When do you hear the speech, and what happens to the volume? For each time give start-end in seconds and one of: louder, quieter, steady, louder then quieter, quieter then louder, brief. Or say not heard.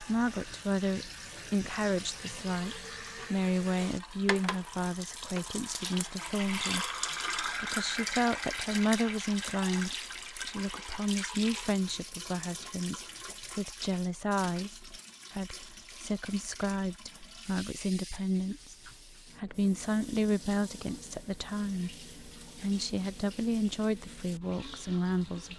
0.0-25.5 steady.